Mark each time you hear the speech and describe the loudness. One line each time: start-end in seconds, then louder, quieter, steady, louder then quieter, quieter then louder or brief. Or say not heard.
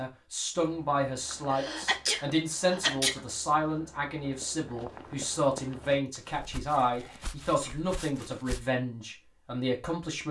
0.0-10.2 steady.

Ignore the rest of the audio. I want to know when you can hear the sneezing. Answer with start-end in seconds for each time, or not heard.
1.5-3.2, 6.9-7.8.